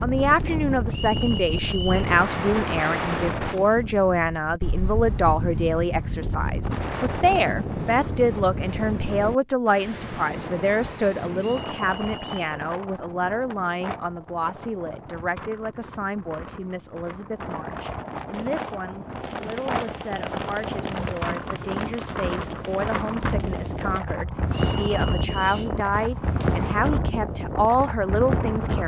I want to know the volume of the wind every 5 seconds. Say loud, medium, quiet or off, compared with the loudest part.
loud, loud, medium, medium, loud, loud.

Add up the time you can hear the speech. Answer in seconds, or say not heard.
29 s.